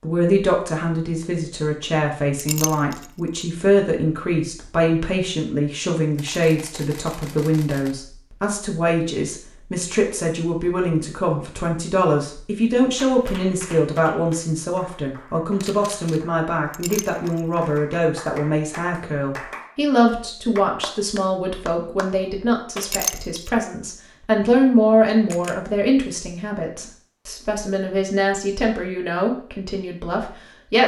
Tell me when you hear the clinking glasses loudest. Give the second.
23 s.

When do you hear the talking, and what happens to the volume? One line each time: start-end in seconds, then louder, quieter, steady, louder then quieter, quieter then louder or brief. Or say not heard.
0.0-30.8 steady.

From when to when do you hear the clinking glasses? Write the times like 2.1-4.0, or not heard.
2.4-3.1, 16.7-17.4, 22.8-23.5.